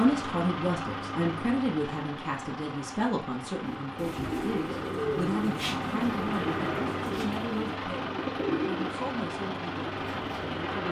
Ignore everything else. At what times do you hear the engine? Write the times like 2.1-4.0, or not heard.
0.0-10.8.